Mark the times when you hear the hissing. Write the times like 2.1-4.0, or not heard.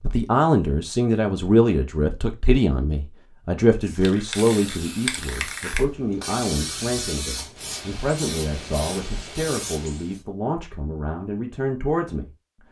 3.8-10.2.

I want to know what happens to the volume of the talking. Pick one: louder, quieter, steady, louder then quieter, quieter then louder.
quieter.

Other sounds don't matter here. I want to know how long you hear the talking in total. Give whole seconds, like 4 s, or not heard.
12 s.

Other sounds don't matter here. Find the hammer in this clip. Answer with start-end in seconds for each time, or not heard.
not heard.